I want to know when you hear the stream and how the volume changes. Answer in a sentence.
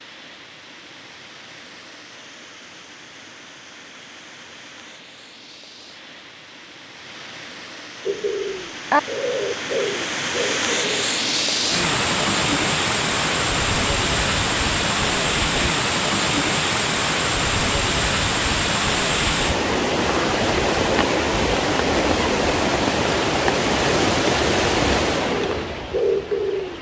You can hear the stream from 0.0 to 26.7 s, getting louder.